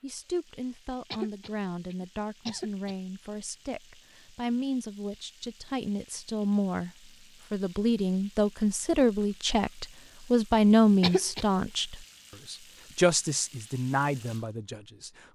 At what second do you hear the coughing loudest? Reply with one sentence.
The loudest moment of the coughing is at 11 seconds.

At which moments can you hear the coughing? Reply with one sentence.
The coughing can be heard from 1.1 to 3.0 s and from 11.0 to 11.4 s.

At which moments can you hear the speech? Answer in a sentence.
The speech can be heard from 0.0 to 15.2 s.